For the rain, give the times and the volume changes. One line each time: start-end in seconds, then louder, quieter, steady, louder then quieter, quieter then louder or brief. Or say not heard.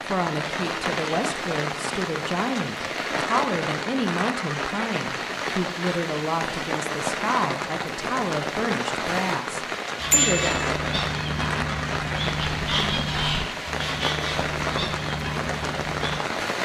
0.0-16.5 steady.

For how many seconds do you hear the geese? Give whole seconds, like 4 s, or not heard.
6 s.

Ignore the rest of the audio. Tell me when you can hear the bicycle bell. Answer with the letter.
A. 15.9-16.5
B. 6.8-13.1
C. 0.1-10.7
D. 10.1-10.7
D.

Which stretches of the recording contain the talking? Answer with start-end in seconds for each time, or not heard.
0.1-10.7.